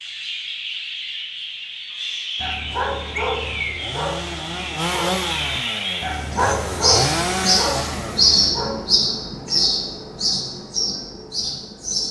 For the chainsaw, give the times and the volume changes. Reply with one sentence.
You can hear the chainsaw from 2.7 to 8.5 s, getting louder.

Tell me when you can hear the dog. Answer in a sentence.
The dog can be heard from 2.4 to 9.0 s.